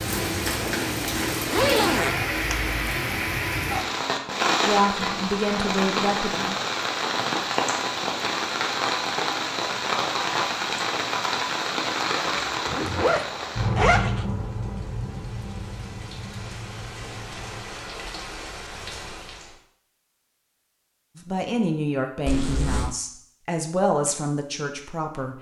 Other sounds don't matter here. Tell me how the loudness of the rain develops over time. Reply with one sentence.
The loudness of the rain goes down.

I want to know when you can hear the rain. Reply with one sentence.
You can hear the rain from 0.0 to 19.6 s.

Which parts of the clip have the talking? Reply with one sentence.
You can hear the talking from 4.7 to 6.5 s and from 21.1 to 25.3 s.